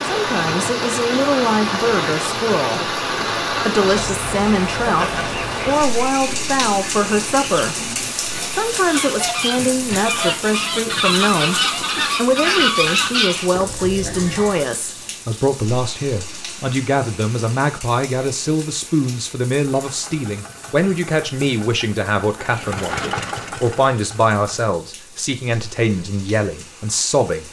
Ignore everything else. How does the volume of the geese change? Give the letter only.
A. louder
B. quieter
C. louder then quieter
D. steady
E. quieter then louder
A.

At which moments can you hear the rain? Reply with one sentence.
The rain can be heard from 0.0 to 27.4 s.